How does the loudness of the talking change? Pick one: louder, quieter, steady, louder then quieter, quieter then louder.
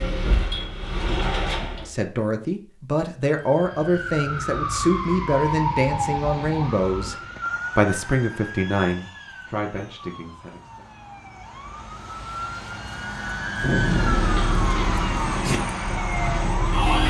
quieter.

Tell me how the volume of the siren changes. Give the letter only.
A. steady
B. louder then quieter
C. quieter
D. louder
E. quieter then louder
E.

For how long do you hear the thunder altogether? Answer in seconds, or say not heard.
2 s.